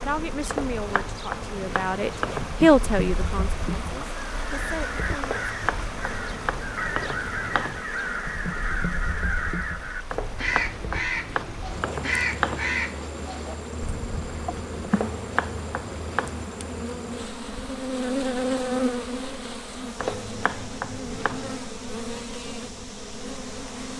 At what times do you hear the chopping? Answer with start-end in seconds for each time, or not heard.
0.5-2.5, 5.2-7.8, 10.1-12.8, 14.9-16.4, 19.9-21.7.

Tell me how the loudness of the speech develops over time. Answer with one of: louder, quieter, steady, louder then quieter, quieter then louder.
louder then quieter.